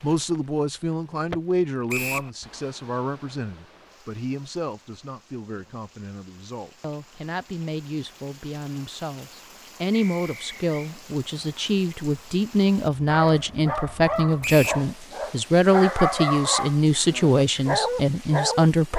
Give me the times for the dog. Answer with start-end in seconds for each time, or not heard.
13.1-18.9.